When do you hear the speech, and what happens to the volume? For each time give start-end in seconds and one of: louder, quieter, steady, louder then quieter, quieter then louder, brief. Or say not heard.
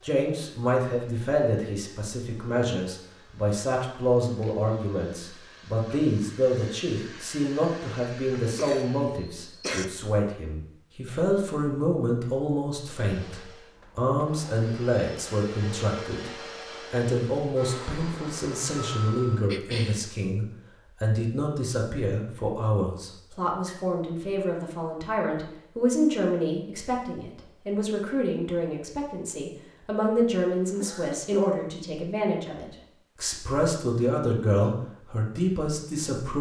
0.0-16.3 steady
16.9-36.3 steady.